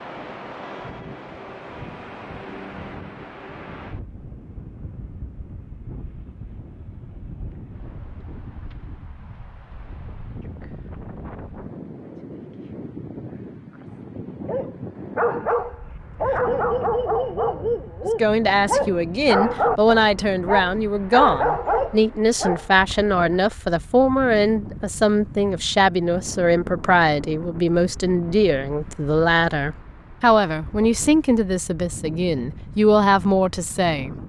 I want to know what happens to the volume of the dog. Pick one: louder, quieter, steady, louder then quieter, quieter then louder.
steady.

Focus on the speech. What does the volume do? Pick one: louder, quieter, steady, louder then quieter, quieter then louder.
steady.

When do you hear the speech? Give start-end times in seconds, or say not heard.
18.1-34.1.